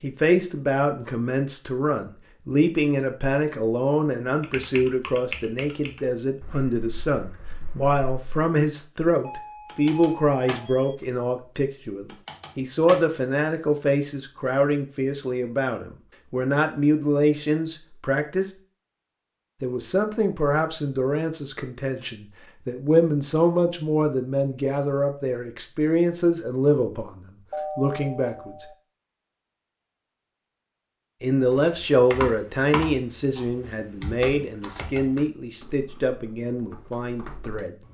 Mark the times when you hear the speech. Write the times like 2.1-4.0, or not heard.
0.0-18.6, 19.6-28.6, 31.2-37.8.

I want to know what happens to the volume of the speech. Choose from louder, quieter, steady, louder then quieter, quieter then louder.
steady.